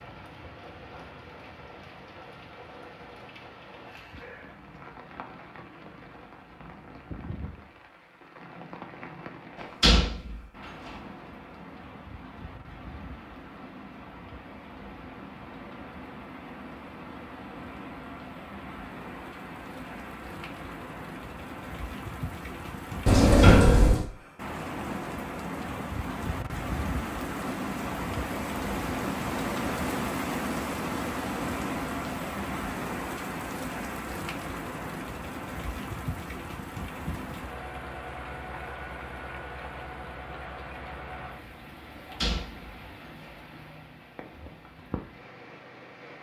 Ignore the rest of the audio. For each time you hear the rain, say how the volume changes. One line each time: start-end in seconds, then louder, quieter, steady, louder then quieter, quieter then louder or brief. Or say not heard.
0.0-46.1 louder then quieter.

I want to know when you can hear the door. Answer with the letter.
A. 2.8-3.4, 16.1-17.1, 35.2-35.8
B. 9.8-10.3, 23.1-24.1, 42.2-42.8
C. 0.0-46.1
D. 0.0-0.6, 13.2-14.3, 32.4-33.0
B.